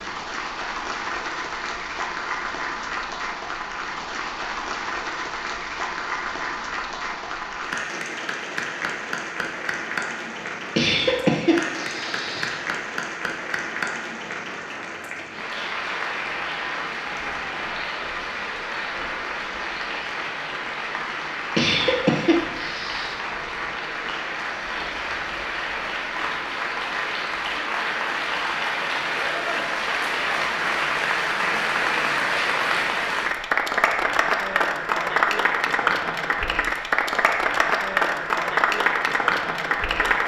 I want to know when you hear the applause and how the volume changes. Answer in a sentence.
You can hear the applause from 0.0 to 40.2 s, getting louder.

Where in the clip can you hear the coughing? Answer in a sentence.
You can hear the coughing from 10.8 to 12.6 s and from 21.6 to 23.1 s.